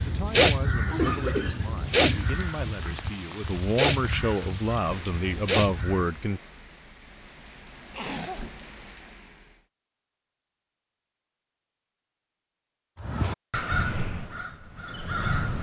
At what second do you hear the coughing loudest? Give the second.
1 s.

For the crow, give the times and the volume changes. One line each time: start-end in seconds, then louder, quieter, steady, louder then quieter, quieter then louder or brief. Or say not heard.
0.0-6.1 quieter then louder
13.0-15.5 brief.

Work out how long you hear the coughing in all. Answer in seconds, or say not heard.
2 s.